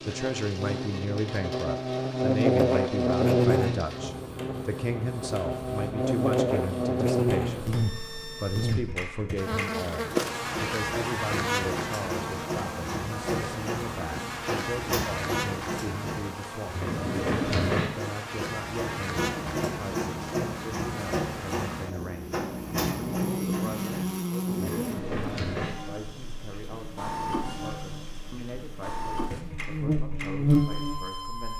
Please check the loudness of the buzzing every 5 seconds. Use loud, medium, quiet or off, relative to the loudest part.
loud, loud, medium, medium, medium, medium, loud.